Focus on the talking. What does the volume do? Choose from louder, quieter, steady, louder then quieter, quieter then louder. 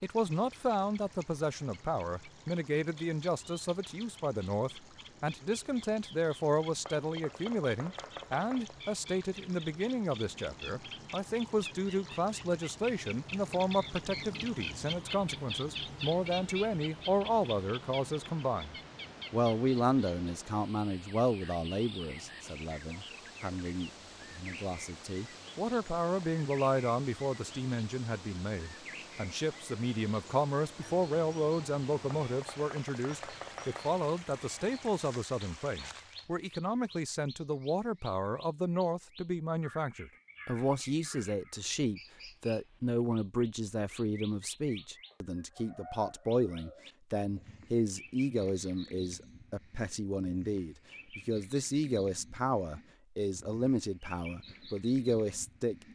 steady.